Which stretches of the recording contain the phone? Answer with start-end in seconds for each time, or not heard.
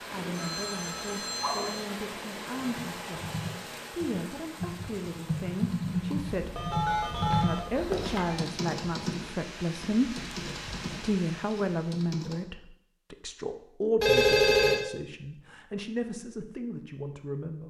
0.3-1.9, 6.3-8.4, 14.0-14.8.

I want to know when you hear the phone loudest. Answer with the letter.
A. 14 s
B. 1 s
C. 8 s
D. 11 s
A.